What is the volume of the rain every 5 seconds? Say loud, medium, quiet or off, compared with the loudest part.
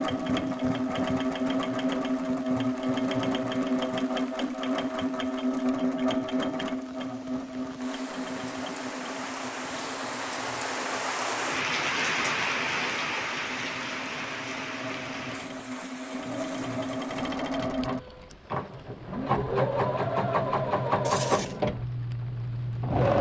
quiet, medium, loud, quiet, quiet.